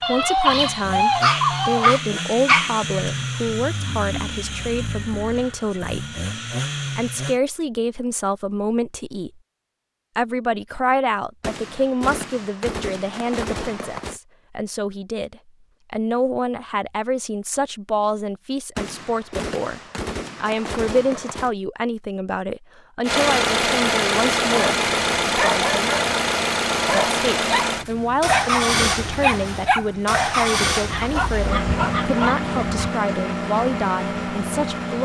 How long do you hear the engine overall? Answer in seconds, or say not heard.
19 s.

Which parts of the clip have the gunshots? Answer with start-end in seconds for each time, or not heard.
11.4-14.2, 18.8-21.5.